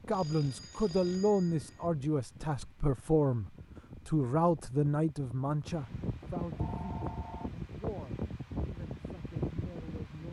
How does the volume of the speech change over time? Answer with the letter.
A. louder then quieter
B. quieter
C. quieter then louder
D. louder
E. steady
B.